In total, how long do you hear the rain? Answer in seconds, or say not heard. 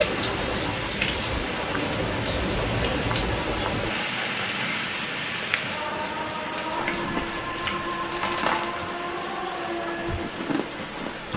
11 s.